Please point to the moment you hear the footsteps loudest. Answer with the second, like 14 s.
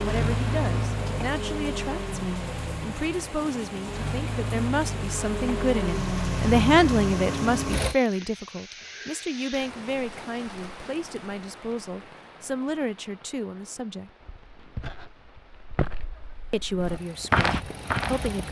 17 s.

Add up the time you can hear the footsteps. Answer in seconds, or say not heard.
4 s.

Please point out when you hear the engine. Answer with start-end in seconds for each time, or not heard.
0.0-8.0, 16.8-18.4.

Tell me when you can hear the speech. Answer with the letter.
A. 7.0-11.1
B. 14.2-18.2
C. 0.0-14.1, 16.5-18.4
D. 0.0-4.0
C.